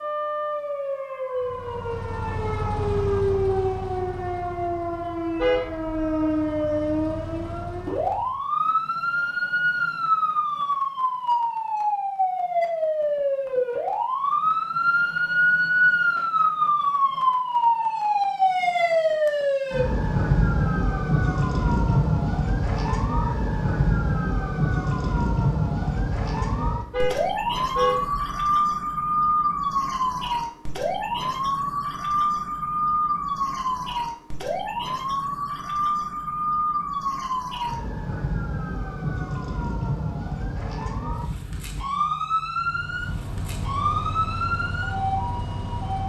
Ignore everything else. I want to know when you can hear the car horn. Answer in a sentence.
The car horn can be heard from 5.3 to 6.2 s and from 26.9 to 28.4 s.